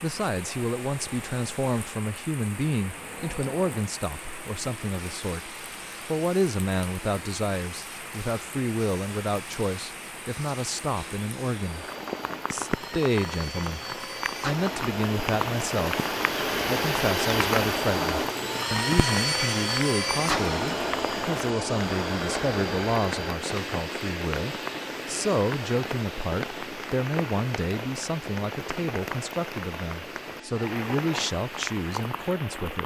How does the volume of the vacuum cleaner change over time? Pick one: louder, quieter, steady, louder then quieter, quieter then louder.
louder then quieter.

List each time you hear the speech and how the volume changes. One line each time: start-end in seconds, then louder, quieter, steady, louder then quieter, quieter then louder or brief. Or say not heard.
0.0-11.8 steady
12.5-32.8 steady.